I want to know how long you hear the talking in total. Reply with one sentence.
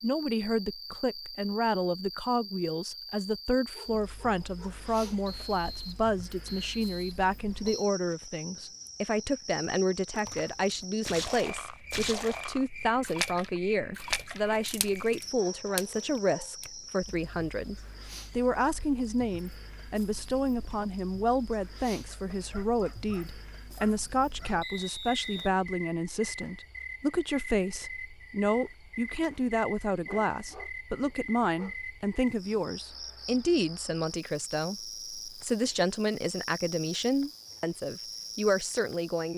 You can hear the talking for 39 seconds altogether.